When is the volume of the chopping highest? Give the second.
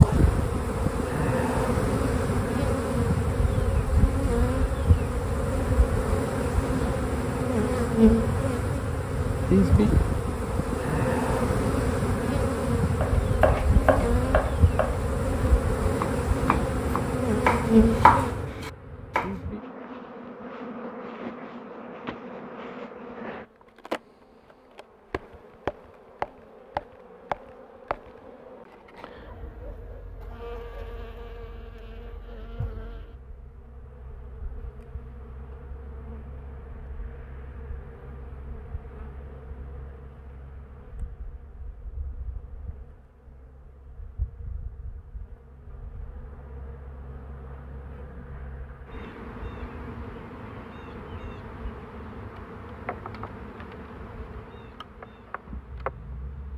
18 s.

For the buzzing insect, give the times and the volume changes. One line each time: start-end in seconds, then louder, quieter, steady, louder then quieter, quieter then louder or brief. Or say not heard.
0.0-56.5 quieter then louder.